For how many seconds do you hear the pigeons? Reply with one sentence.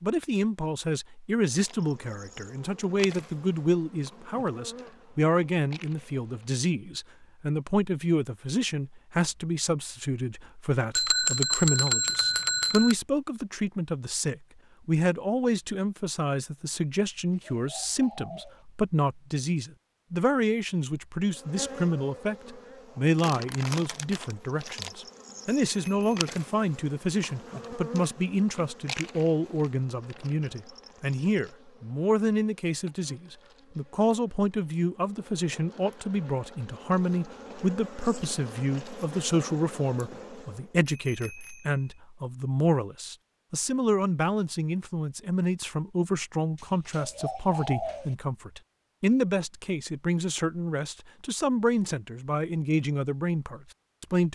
The pigeons can be heard for 3 seconds in total.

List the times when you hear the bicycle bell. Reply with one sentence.
You can hear the bicycle bell from 10.9 to 12.9 s, from 25.6 to 26.1 s and from 40.9 to 42.0 s.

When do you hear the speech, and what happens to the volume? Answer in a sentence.
The speech can be heard from 0.0 to 54.3 s, at a steady volume.